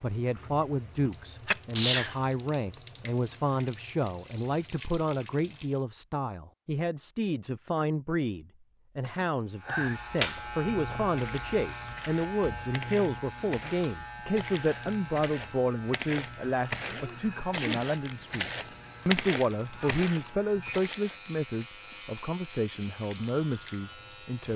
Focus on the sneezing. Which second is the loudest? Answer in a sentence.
The volume of the sneezing peaks at 2 seconds.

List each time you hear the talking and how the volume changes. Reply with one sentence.
The talking can be heard from 0.0 to 24.5 s, at a steady volume.